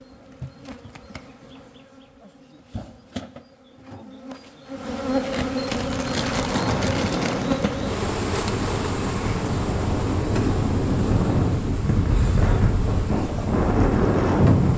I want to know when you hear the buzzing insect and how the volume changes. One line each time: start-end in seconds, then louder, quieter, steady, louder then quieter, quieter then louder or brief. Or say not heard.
0.0-14.7 louder then quieter.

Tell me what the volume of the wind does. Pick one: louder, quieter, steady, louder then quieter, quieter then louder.
louder.